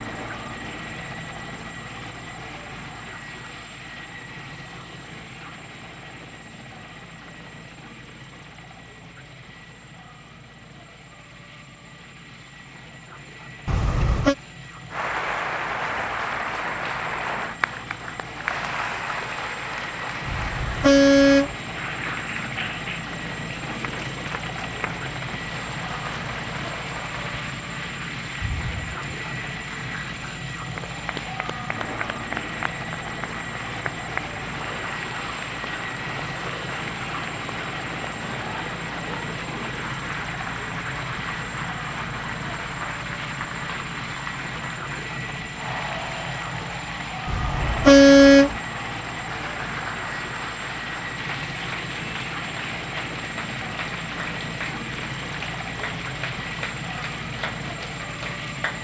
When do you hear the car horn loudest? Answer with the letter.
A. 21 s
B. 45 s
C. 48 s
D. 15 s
C.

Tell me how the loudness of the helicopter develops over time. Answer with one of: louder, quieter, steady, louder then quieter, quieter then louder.
louder.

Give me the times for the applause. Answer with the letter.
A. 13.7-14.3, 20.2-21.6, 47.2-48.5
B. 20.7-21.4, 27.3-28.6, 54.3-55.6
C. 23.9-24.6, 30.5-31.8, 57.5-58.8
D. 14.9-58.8
D.